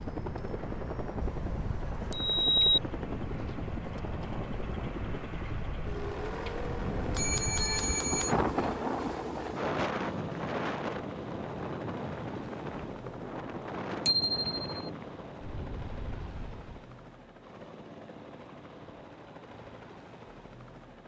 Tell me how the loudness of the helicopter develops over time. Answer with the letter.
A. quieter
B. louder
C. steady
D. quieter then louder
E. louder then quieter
A.